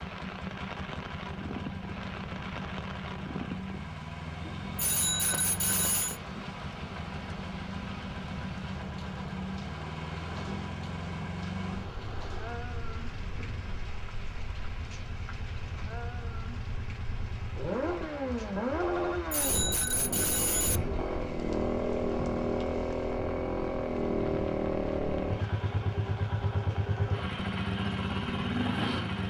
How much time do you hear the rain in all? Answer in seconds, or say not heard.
29 s.